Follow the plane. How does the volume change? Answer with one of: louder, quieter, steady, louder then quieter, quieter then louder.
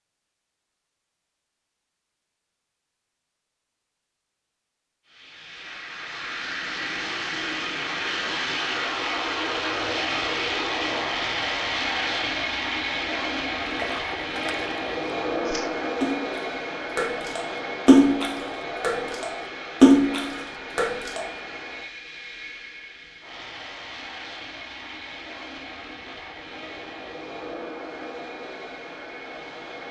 quieter.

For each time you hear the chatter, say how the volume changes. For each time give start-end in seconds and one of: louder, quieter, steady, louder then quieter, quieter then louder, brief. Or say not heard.
not heard.